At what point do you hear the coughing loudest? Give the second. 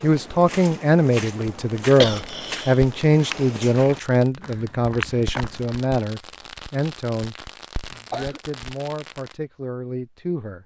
2 s.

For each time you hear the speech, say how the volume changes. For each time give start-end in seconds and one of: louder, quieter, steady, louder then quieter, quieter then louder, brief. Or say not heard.
0.0-10.6 quieter.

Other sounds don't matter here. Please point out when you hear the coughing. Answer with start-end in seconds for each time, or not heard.
2.0-2.8, 8.0-8.4.